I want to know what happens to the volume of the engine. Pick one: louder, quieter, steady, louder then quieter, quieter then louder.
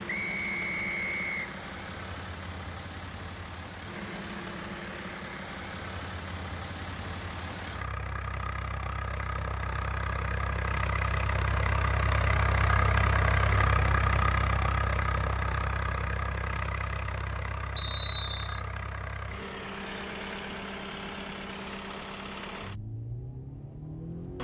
louder then quieter.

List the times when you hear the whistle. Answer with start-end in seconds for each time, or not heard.
0.1-1.4, 17.8-18.6.